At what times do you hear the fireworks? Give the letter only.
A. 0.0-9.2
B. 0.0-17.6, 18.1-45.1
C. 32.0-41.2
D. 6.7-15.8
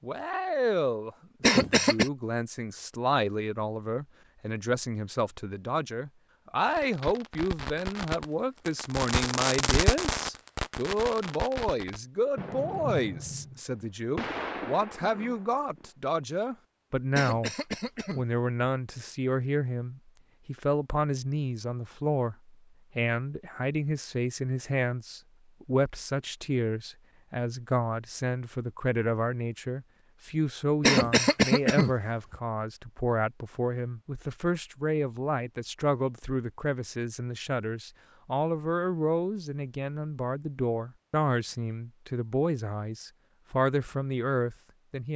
D.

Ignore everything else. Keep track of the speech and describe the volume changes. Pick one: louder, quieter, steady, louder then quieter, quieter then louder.
steady.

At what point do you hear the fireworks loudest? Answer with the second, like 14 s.
10 s.